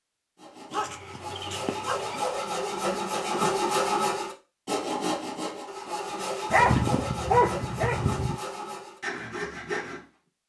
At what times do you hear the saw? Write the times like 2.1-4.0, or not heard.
0.4-10.1.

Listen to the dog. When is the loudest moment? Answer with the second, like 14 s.
7 s.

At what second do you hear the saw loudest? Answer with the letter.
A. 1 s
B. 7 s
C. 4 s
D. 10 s
C.